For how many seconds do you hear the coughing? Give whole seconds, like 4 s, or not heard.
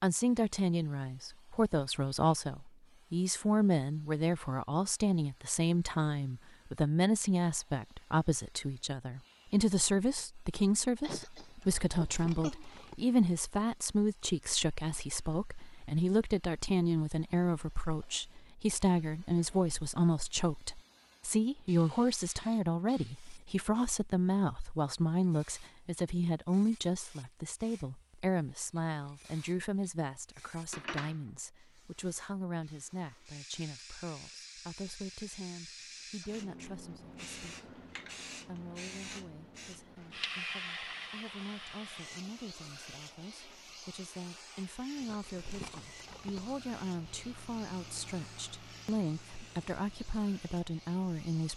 2 s.